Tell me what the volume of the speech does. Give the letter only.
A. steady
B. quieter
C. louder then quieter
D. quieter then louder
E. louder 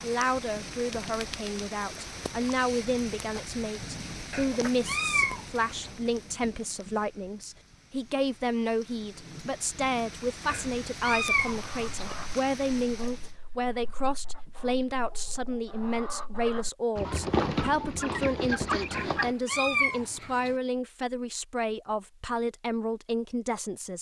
A.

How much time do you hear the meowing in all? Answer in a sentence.
You can hear the meowing for 5 seconds altogether.